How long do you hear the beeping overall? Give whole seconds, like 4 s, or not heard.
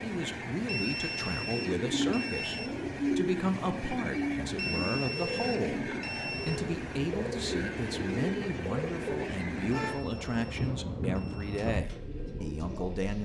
6 s.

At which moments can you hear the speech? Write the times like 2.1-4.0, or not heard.
0.0-13.2.